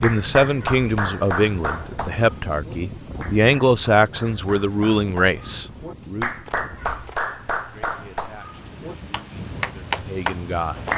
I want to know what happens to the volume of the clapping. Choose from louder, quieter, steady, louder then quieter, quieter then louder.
quieter then louder.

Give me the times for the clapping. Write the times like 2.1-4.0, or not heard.
0.0-10.9.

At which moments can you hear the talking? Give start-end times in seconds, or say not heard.
0.0-6.3, 7.6-10.9.